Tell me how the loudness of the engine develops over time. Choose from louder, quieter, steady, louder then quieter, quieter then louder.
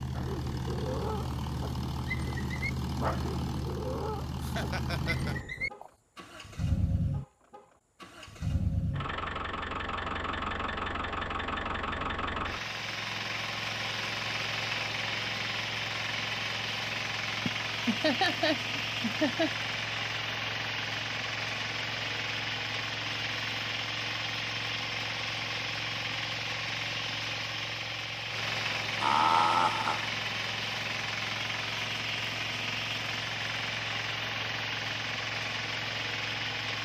steady.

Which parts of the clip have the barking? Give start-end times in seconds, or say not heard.
0.1-5.9.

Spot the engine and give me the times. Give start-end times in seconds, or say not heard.
0.0-36.7.